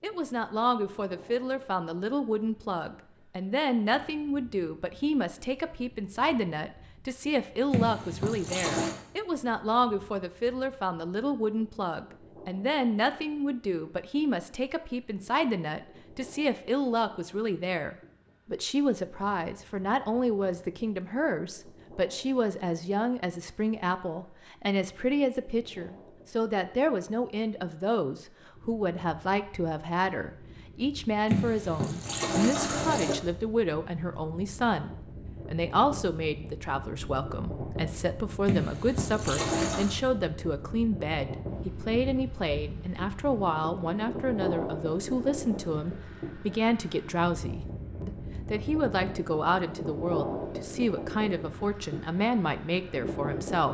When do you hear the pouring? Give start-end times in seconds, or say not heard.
7.7-8.9, 31.3-33.1, 38.5-40.0.